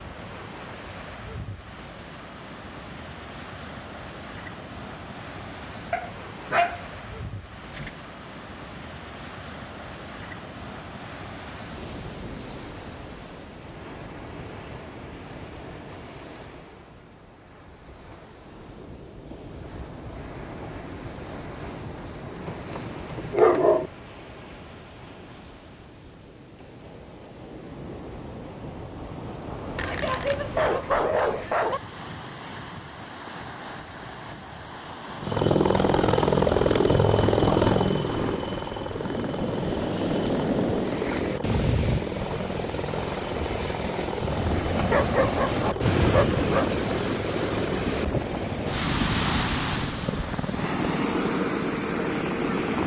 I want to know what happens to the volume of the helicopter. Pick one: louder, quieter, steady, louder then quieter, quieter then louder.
quieter.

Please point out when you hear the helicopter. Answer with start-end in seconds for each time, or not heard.
35.2-52.8.